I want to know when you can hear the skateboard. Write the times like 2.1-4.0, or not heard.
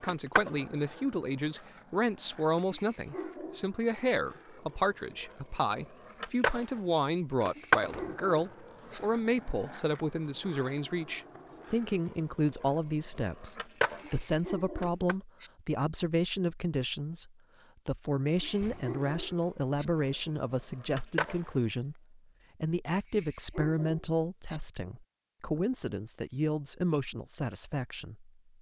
0.0-15.2, 18.2-21.8.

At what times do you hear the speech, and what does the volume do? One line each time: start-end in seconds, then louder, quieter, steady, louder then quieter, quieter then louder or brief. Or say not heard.
0.0-28.3 steady.